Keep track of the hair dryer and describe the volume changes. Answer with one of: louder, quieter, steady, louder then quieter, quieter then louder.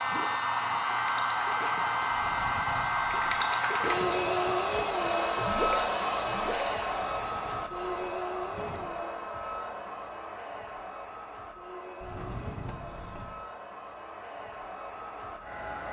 quieter.